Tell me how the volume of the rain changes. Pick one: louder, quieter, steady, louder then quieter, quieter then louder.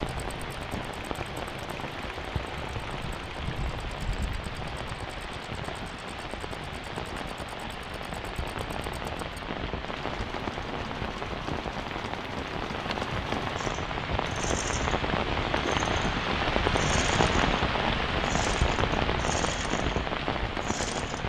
louder.